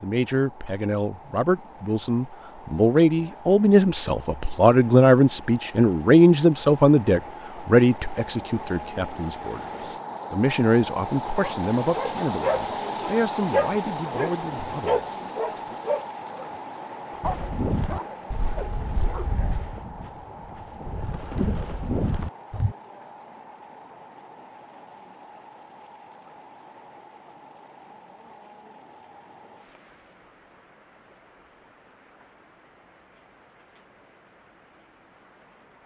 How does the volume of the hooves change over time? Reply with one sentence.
The loudness of the hooves goes down, then up.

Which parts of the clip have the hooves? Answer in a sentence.
The hooves can be heard from 17.2 to 22.8 s.